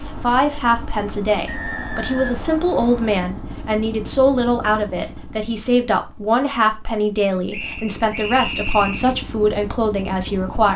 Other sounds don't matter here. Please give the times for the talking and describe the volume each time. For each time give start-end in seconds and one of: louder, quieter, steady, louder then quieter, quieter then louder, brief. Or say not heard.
0.0-10.7 steady.